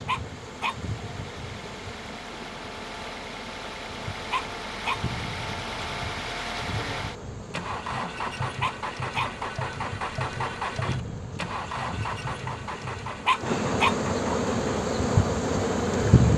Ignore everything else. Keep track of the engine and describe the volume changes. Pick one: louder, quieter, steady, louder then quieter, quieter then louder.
louder.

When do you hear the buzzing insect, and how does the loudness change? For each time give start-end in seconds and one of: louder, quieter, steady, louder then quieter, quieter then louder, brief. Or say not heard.
0.0-16.3 louder.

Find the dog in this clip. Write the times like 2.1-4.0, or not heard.
0.1-0.8, 4.3-5.0, 8.6-9.3, 13.2-13.9.